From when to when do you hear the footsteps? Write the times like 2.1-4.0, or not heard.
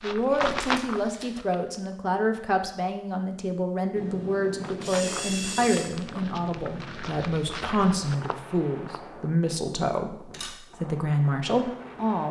0.0-1.9, 4.5-9.0.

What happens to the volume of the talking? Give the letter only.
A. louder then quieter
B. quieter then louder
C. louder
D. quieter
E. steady
E.